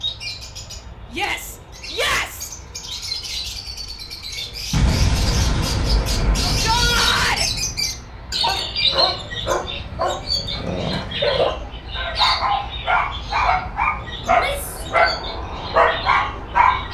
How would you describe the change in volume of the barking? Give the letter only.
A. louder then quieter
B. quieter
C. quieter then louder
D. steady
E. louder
E.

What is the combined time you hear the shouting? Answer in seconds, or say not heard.
3 s.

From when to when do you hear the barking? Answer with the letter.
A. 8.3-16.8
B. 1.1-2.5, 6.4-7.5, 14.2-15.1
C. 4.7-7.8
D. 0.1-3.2
A.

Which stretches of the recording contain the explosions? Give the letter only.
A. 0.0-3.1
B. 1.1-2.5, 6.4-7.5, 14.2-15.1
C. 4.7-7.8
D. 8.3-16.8
C.